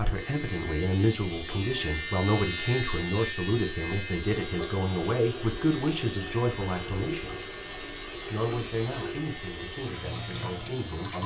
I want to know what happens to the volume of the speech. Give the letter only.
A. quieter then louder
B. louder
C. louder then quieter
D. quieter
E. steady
D.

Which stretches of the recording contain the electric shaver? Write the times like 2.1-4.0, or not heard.
0.0-11.2.